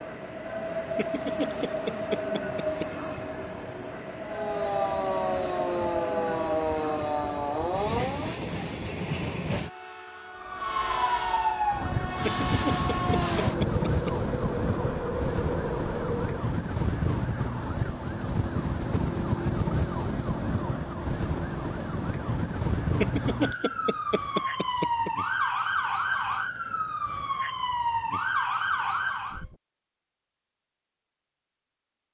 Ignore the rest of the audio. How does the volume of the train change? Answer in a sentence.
The volume of the train stays about the same.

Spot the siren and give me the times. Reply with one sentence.
The siren can be heard from 4.2 to 8.4 s and from 10.3 to 29.6 s.